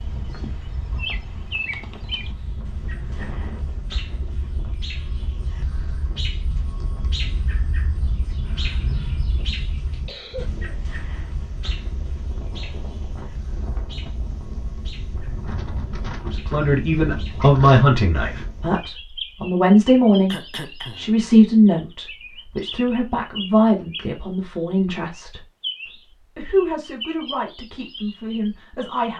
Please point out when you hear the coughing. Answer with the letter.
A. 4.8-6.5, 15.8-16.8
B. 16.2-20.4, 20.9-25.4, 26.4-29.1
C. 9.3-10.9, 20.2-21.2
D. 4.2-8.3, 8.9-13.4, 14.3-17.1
C.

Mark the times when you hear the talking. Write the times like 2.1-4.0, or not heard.
16.2-20.4, 20.9-25.4, 26.4-29.1.